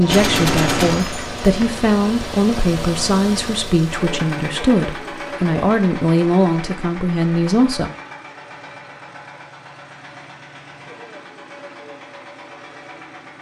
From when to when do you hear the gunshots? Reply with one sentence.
The gunshots can be heard from 0.1 to 1.8 s.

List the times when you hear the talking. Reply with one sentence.
The talking can be heard from 0.0 to 7.9 s.